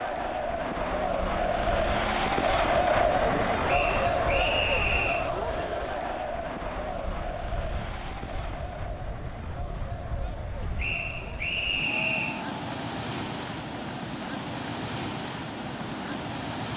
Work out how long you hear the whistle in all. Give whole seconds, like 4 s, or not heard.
3 s.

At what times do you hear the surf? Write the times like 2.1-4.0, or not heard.
0.0-16.7.